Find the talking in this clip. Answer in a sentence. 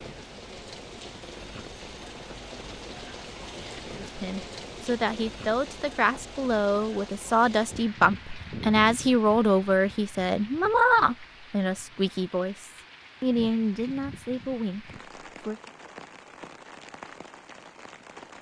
The talking can be heard from 4.0 to 15.6 s.